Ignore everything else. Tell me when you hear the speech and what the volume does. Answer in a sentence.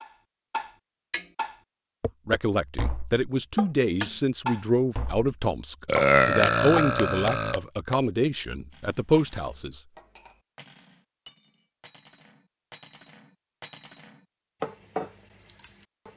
You can hear the speech from 2.2 to 9.8 s, at a steady volume.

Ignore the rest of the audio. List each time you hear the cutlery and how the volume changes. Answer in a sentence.
The cutlery can be heard from 8.7 to 16.1 s, getting louder.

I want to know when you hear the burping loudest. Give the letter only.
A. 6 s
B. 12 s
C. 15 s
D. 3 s
A.